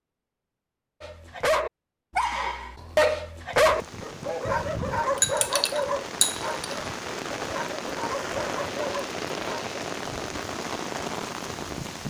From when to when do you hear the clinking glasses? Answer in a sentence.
The clinking glasses can be heard from 5.2 to 6.8 s.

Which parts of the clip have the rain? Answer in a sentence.
You can hear the rain from 3.5 to 12.0 s.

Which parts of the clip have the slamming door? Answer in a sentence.
The slamming door can't be heard in this clip.